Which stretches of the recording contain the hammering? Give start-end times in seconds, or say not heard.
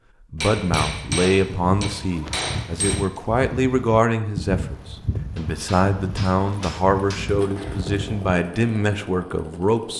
0.4-3.2, 5.3-7.4.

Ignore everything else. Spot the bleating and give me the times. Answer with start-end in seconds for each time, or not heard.
0.8-8.3.